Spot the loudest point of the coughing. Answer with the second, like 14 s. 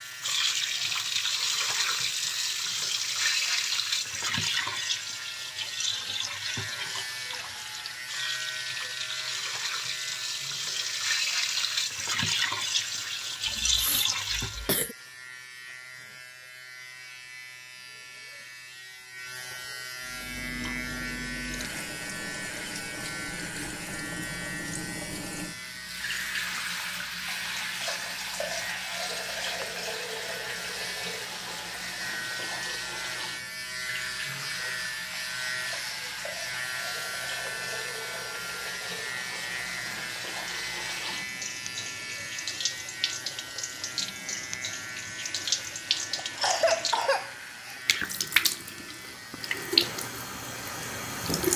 47 s.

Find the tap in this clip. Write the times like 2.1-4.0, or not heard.
0.0-14.7, 20.0-51.5.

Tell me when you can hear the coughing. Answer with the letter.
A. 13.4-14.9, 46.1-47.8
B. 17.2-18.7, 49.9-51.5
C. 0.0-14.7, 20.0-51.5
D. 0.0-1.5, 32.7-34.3
A.